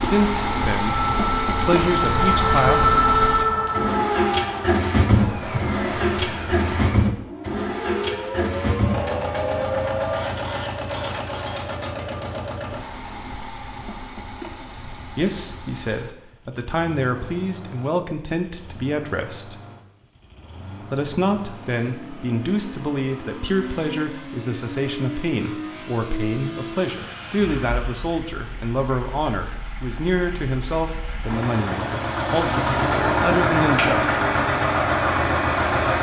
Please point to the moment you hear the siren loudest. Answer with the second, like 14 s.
3 s.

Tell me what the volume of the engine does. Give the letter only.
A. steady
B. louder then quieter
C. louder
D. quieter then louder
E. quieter
D.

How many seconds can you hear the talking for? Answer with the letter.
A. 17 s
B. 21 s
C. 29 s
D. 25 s
B.